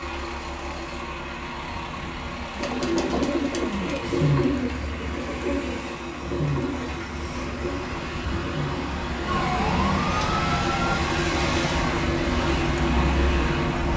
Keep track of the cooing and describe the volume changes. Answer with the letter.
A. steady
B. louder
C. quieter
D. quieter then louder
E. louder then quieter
C.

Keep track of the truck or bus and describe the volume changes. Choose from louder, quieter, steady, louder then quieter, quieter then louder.
louder.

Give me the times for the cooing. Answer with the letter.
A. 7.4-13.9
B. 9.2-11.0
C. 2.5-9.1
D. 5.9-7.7
C.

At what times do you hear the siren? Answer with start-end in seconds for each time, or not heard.
9.2-11.0.